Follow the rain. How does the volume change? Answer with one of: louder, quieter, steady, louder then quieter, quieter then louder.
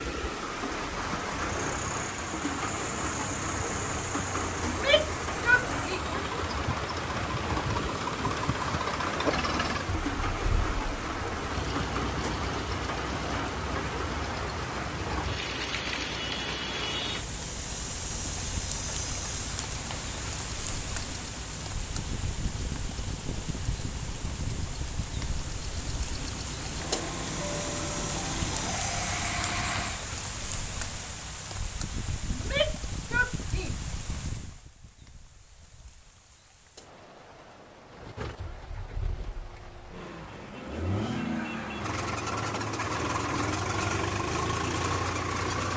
quieter.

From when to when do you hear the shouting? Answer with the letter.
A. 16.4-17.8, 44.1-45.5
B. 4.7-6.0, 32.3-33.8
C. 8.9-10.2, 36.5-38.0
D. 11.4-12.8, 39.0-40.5
B.